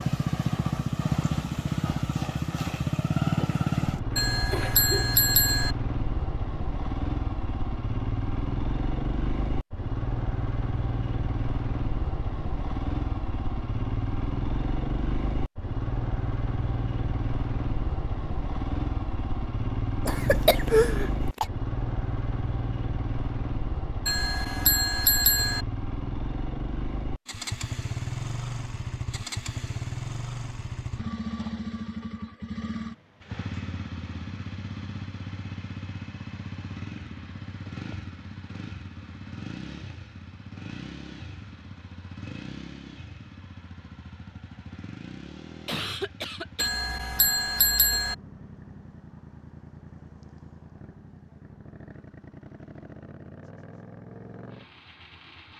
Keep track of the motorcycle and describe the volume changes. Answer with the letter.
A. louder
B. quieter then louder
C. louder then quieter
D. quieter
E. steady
D.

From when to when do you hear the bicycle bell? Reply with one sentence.
The bicycle bell can be heard from 4.2 to 5.8 s, from 24.1 to 25.6 s and from 46.5 to 48.1 s.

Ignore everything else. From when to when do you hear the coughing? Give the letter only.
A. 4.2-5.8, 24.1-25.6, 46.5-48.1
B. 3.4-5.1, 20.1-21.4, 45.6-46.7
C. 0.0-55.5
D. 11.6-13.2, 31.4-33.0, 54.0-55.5
B.